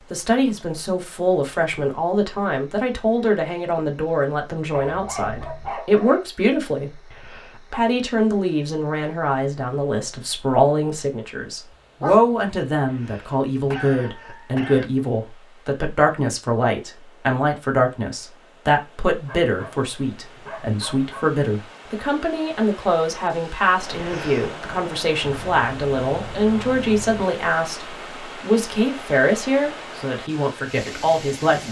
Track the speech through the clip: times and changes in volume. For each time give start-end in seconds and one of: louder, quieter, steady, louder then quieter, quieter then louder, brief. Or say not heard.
0.1-31.6 steady.